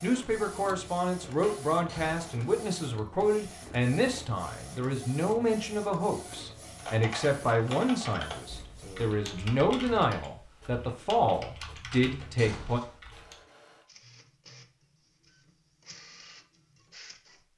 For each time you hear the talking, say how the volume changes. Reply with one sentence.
The talking can be heard from 0.0 to 12.8 s, at a steady volume.